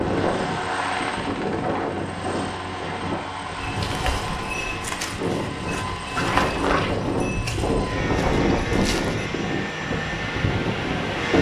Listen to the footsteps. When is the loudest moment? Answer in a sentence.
The loudest moment of the footsteps is at 6 seconds.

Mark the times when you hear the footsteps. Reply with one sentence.
You can hear the footsteps from 3.6 to 9.3 s.